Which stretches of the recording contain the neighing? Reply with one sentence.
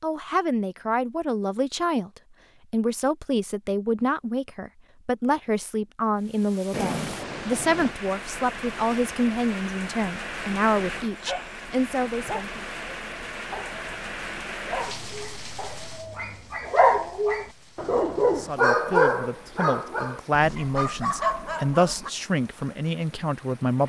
You can hear the neighing from 6.7 to 8.0 s.